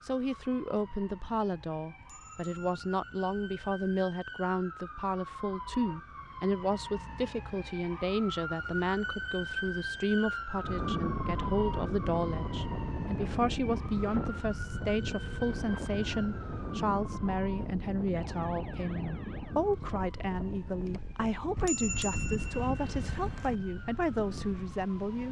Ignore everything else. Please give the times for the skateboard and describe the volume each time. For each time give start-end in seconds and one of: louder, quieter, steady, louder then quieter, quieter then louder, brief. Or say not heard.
not heard.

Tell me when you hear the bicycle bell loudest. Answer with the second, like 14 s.
22 s.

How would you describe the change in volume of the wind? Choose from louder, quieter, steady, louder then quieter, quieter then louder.
quieter.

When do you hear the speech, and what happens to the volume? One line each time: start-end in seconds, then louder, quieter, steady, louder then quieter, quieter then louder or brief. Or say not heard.
0.0-25.2 steady.